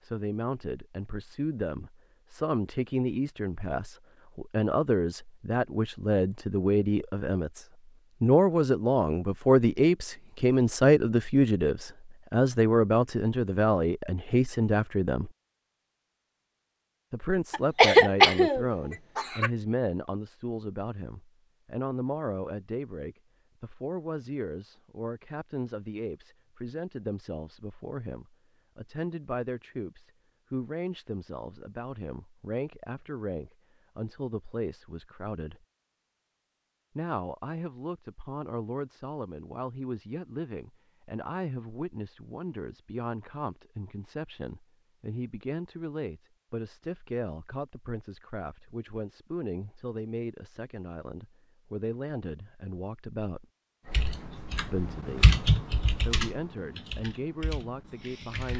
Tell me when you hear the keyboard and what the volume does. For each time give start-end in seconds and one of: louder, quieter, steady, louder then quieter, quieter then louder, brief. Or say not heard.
53.9-58.5 louder then quieter.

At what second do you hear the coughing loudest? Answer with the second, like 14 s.
18 s.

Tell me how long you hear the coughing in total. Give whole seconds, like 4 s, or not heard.
2 s.